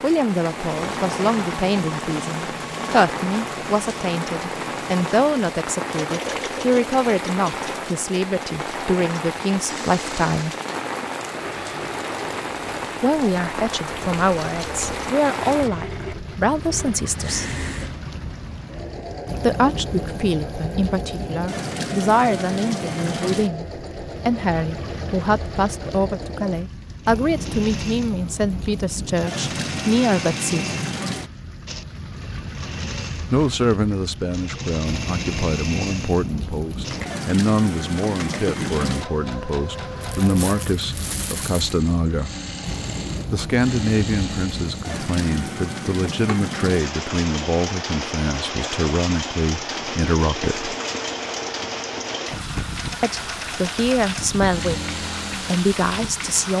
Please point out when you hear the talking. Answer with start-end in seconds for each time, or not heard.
0.0-10.6, 13.0-17.6, 19.4-30.8, 33.3-42.3, 43.3-50.7, 53.0-56.5.